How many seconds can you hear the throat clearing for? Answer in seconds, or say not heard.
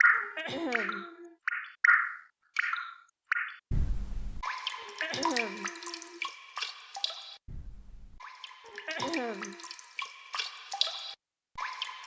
4 s.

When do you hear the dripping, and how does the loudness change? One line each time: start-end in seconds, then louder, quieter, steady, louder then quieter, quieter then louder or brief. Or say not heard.
0.0-12.0 quieter then louder.